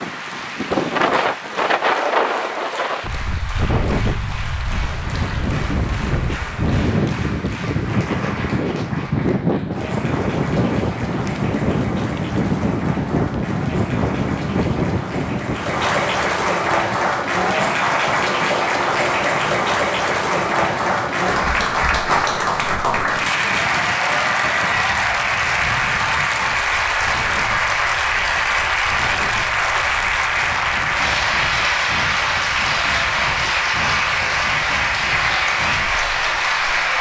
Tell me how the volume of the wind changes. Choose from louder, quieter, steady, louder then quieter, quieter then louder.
quieter.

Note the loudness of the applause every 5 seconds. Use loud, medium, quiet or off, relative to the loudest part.
quiet, quiet, quiet, loud, loud, loud, loud, loud.